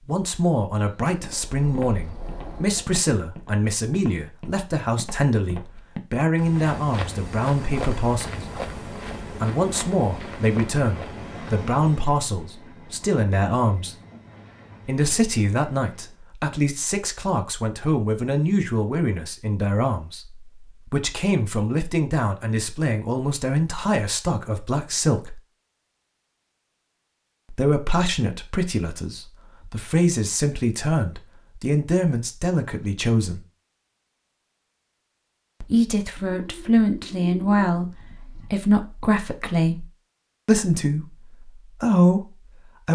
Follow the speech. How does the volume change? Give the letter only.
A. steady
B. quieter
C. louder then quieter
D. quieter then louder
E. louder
A.